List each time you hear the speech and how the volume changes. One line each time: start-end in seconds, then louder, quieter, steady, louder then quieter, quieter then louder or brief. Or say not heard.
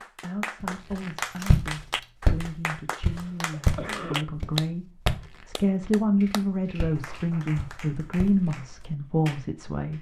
0.0-9.9 louder.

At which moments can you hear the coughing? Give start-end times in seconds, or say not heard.
3.1-4.2.